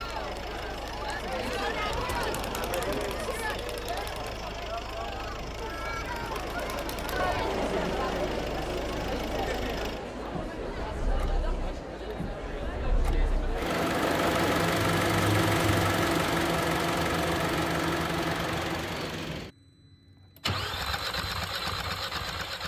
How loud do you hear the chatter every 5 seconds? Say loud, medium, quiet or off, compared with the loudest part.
loud, loud, loud, off, off.